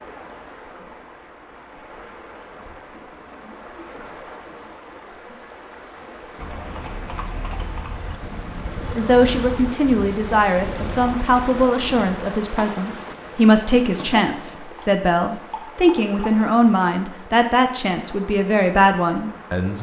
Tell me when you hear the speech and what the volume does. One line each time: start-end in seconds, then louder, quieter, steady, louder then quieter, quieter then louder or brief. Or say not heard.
8.6-19.7 steady.